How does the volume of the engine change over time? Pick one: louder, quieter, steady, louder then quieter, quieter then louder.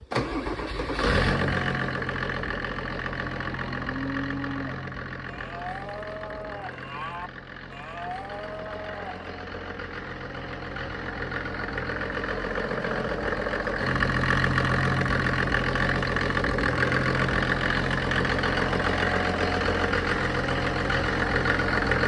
quieter then louder.